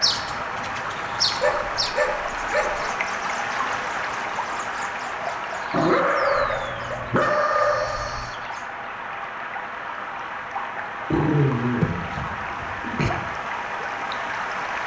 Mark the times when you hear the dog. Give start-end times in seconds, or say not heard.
1.4-3.0, 5.7-8.3, 11.1-13.1.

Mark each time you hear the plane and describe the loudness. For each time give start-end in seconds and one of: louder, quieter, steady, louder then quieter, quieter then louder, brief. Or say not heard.
not heard.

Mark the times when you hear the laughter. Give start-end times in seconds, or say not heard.
not heard.